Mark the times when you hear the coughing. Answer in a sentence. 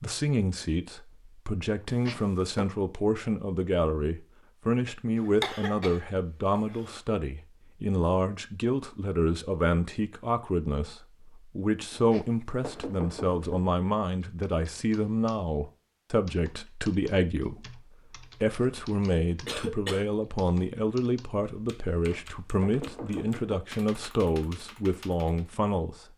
You can hear the coughing from 5.2 to 7.0 s and from 19.4 to 20.1 s.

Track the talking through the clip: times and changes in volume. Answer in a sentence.
The talking can be heard from 0.0 to 26.1 s, at a steady volume.